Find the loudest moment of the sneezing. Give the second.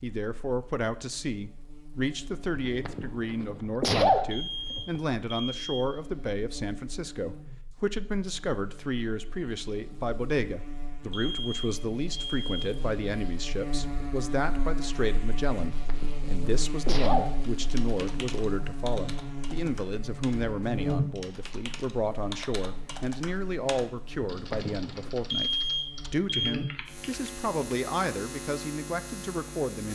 4 s.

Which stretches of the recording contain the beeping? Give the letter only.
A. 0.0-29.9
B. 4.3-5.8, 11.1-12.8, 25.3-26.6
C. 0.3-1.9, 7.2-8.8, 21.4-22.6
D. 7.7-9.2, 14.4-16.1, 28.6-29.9
B.